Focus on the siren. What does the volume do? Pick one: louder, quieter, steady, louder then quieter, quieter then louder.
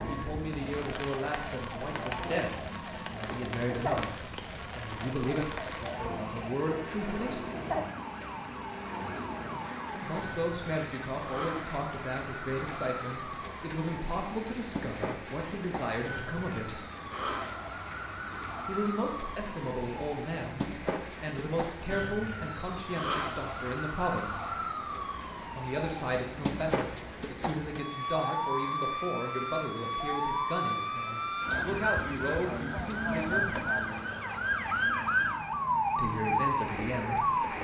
louder.